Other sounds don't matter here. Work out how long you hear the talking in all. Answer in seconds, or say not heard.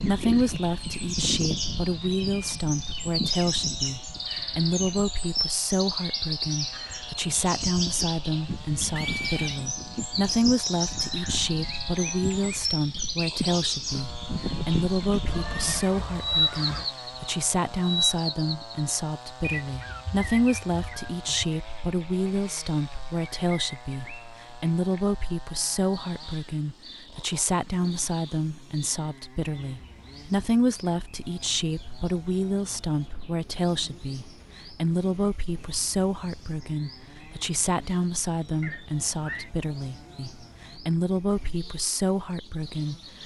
43 s.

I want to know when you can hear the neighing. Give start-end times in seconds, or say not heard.
8.9-9.6, 15.2-16.9, 38.6-39.5.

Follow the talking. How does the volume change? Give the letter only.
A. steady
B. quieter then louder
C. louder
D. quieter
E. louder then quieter
A.